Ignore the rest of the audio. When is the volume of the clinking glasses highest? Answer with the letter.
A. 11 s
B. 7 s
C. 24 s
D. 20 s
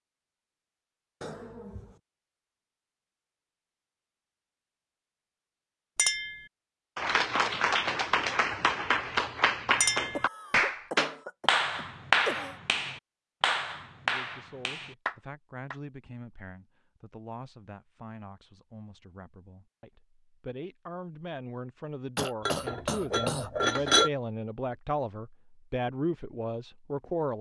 C.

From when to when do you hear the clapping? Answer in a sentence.
You can hear the clapping from 7.0 to 15.8 s.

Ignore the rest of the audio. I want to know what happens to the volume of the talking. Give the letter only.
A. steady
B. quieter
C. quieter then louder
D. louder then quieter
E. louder
E.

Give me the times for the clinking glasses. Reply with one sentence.
You can hear the clinking glasses from 6.0 to 6.5 s, from 9.8 to 10.2 s and from 22.4 to 24.1 s.